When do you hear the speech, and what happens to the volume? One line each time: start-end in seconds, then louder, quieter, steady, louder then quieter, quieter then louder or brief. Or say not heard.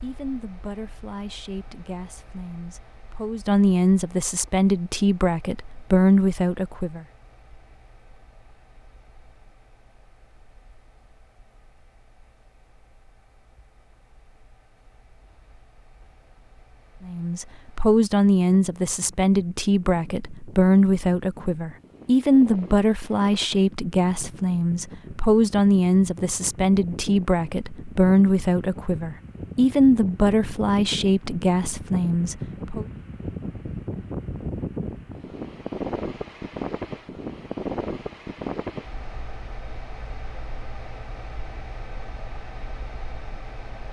0.0-7.0 louder
17.1-32.9 steady.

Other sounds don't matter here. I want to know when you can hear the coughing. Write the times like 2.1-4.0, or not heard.
not heard.